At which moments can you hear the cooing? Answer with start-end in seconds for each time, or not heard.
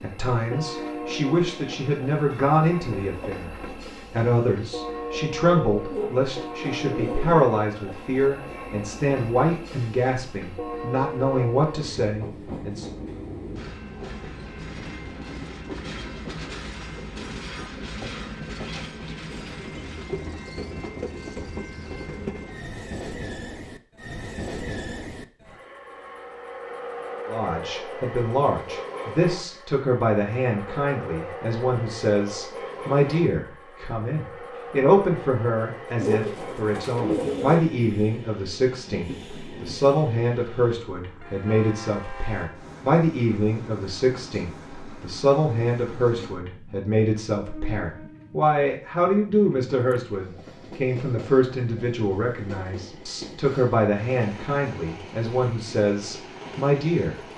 5.9-7.5, 36.0-37.7.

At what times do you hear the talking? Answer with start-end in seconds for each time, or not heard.
0.0-12.9, 27.2-57.1.